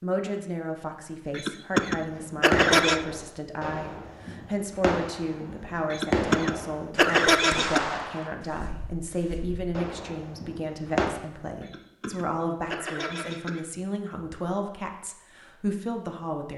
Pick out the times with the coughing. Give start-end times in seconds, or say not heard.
1.3-3.0, 5.9-7.8, 11.6-13.6.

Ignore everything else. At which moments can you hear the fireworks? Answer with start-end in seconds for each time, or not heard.
1.7-11.1.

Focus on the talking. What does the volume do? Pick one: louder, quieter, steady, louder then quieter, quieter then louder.
steady.